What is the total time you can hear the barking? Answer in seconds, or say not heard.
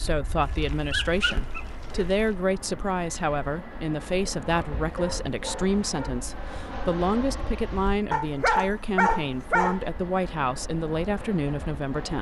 6 s.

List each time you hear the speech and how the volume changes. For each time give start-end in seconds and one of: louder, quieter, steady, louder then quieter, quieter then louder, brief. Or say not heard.
0.0-12.1 steady.